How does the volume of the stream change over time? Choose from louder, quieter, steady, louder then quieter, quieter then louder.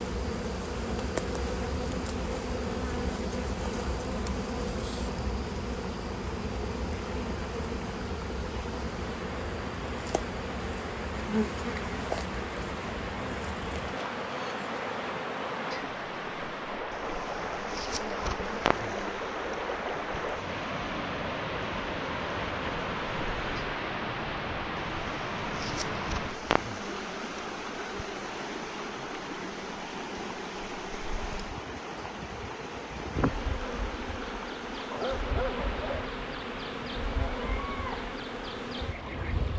louder then quieter.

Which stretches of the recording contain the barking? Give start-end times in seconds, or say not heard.
34.9-36.1.